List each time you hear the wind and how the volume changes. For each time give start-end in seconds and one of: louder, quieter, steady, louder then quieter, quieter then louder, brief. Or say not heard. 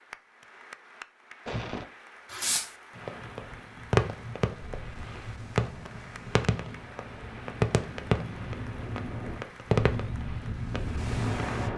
3.0-11.7 louder.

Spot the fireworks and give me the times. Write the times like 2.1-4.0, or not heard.
1.4-11.7.